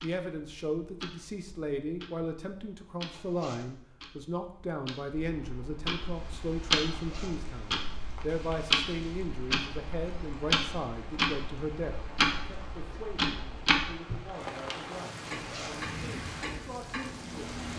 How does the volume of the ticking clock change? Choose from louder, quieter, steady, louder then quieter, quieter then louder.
louder then quieter.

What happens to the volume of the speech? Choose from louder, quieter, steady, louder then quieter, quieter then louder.
quieter.